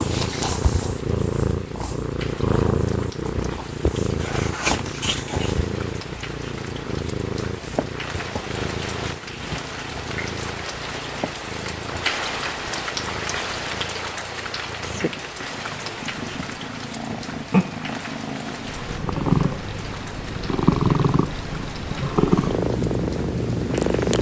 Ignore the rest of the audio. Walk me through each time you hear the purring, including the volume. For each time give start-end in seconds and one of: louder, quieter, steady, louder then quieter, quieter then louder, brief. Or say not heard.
0.0-24.1 quieter then louder.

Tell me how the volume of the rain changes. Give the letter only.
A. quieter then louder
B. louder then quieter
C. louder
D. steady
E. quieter
B.